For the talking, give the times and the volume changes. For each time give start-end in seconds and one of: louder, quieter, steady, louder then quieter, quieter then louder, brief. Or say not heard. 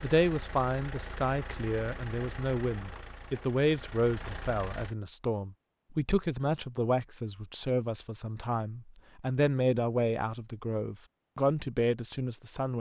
0.0-12.7 steady.